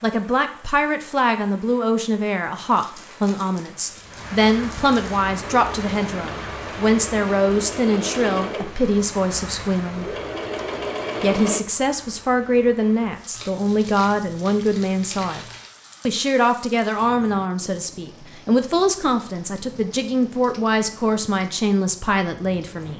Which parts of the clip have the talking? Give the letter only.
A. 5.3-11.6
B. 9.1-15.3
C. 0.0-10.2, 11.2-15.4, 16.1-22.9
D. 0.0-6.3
C.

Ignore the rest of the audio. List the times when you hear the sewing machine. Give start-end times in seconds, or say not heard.
5.3-11.6.